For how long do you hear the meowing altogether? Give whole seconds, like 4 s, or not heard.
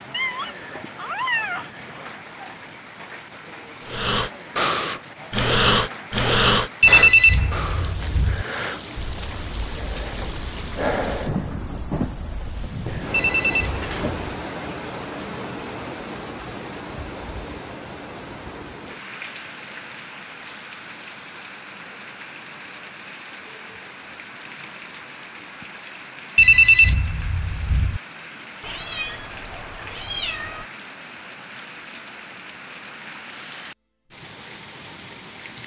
4 s.